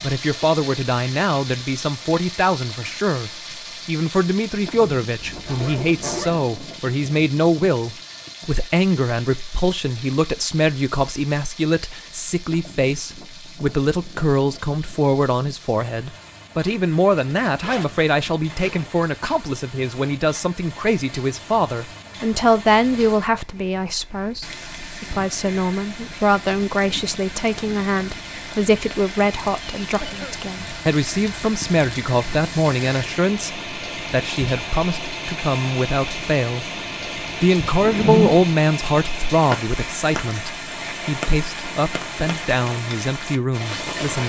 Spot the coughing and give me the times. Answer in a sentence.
The coughing can be heard from 30.0 to 30.4 s.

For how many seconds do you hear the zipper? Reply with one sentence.
You can hear the zipper for 3 seconds altogether.